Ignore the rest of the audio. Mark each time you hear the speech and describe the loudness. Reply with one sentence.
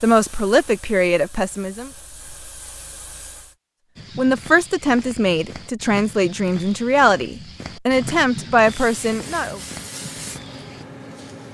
You can hear the speech briefly from 0.0 to 1.9 s; and from 4.2 to 9.6 s, at a steady volume.